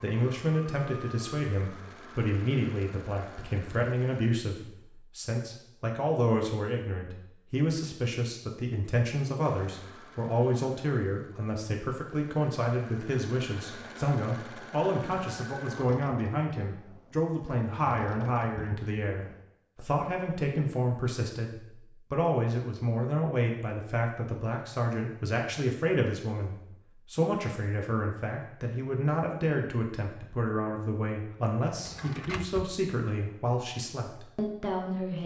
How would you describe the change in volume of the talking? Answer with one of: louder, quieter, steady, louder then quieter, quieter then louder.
steady.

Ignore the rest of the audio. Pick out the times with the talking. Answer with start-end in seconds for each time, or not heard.
0.0-35.2.